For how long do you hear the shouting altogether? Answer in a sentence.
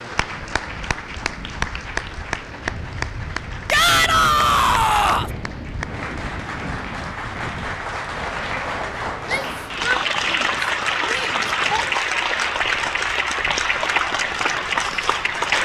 The shouting can be heard for 4 seconds in total.